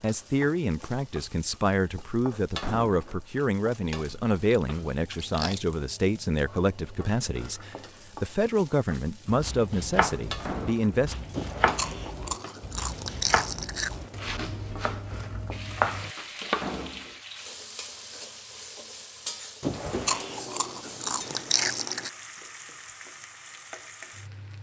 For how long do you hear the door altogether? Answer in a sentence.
The door can be heard for 2 seconds in total.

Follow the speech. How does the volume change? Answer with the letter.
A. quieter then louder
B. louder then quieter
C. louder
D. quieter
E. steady
E.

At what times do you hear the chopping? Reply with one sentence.
You can hear the chopping from 9.2 to 16.9 s.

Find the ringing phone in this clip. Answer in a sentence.
The ringing phone can't be heard in this clip.